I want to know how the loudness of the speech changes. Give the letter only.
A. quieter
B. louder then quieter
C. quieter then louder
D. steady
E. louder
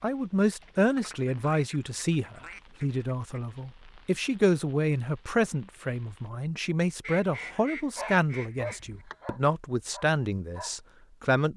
D.